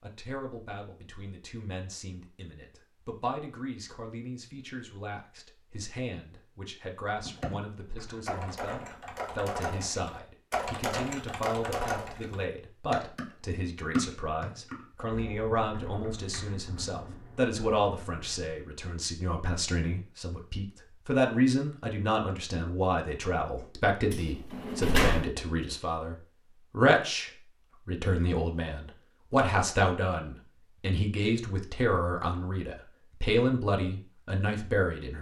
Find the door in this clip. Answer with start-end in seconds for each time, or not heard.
24.1-25.3.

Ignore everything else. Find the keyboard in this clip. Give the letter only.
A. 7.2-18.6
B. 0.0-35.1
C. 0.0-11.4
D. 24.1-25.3
A.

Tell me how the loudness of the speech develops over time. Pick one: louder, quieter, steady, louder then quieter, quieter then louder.
louder.